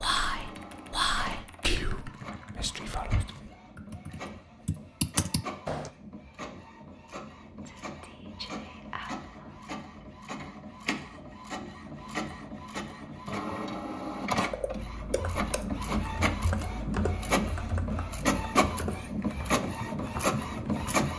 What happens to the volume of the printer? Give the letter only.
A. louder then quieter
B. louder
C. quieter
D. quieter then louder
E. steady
B.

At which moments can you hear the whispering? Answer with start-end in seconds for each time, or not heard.
0.0-3.5, 7.7-9.7.